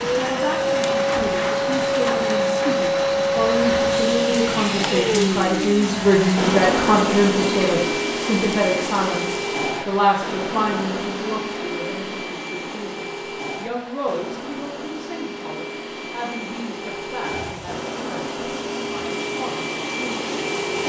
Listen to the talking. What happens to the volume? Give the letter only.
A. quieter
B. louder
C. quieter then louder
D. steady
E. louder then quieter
E.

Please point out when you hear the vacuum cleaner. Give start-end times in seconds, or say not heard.
0.0-20.8.